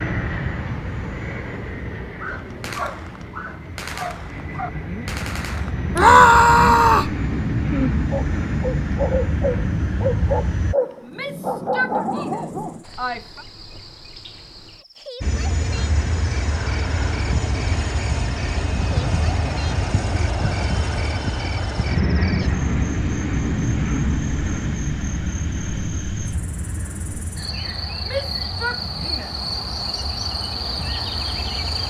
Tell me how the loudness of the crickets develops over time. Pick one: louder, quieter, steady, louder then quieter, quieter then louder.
louder.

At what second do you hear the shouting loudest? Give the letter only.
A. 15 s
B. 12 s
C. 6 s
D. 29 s
C.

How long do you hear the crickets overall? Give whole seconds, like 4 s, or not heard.
20 s.